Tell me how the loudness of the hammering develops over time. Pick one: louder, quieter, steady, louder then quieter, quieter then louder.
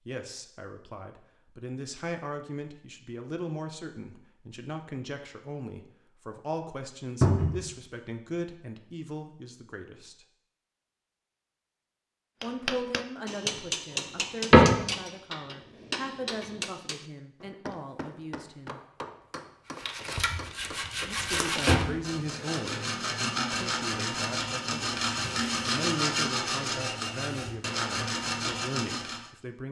quieter.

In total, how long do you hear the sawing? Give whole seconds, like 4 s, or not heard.
10 s.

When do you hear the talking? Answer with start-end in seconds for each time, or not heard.
0.1-10.2, 12.4-18.8, 20.9-29.6.